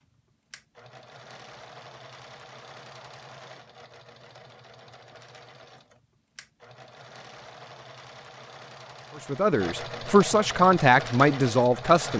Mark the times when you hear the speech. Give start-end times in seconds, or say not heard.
9.2-12.1.